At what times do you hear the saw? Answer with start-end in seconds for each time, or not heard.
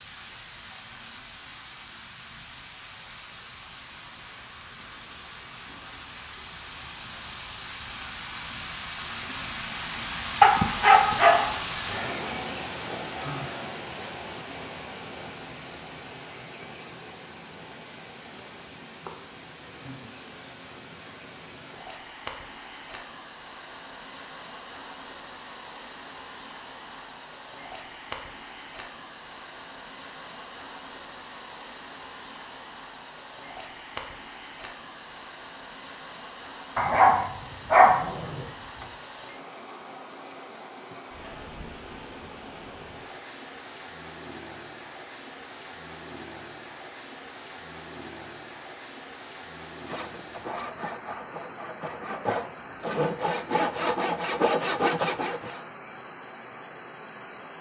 49.9-55.6.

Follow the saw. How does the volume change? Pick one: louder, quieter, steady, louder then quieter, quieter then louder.
louder.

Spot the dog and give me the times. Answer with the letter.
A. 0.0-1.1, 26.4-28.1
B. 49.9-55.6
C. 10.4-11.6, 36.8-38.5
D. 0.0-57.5
C.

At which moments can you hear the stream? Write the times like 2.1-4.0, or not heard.
0.0-57.5.